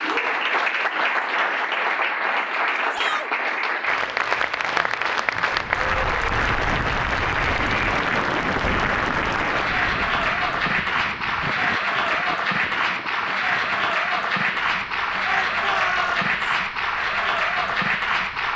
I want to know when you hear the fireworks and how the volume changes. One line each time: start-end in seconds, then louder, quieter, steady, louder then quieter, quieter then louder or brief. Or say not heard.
not heard.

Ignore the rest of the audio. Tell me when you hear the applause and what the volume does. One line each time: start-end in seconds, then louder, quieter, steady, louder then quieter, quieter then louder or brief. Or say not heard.
0.0-18.5 steady.